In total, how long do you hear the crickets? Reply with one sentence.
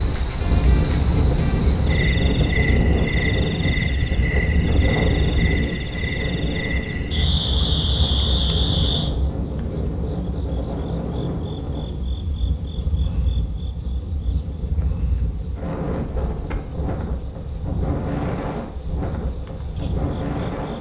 The crickets can be heard for 21 seconds in total.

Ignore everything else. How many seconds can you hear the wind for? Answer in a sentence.
You can hear the wind for 21 seconds altogether.